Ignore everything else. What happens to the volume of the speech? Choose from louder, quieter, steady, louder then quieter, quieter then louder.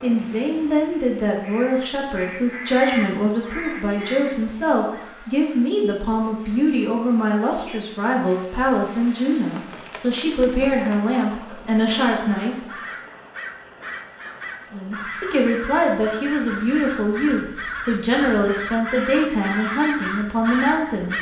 steady.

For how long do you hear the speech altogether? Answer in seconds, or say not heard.
19 s.